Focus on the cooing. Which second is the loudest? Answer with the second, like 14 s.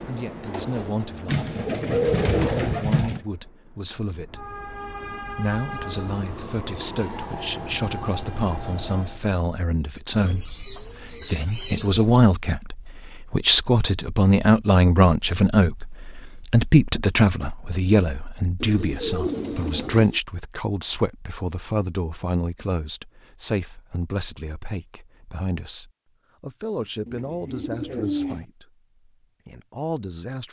2 s.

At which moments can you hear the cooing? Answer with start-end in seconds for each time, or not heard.
1.2-3.2, 10.2-12.2, 18.6-20.1, 27.1-28.4.